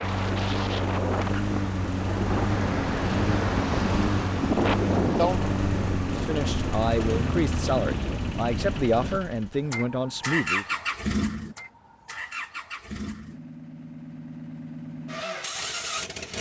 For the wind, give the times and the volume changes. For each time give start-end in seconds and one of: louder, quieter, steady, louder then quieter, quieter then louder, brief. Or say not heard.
0.0-9.2 louder then quieter.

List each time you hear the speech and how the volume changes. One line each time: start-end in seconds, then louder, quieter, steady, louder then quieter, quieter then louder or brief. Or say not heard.
6.1-10.7 steady.